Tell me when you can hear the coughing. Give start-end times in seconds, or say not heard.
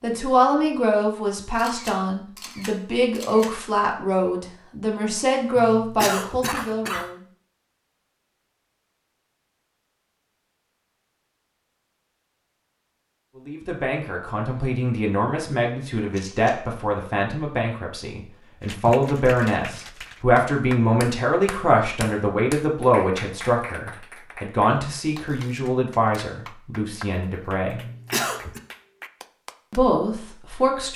5.5-7.0, 27.6-28.6.